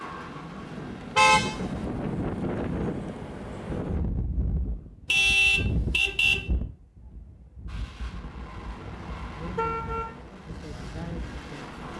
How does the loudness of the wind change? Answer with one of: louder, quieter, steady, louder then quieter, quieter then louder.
quieter then louder.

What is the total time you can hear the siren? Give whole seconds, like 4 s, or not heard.
not heard.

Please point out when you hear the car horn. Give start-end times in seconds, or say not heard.
1.1-1.6, 5.0-6.4, 9.1-10.2.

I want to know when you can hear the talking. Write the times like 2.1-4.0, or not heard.
9.3-11.8.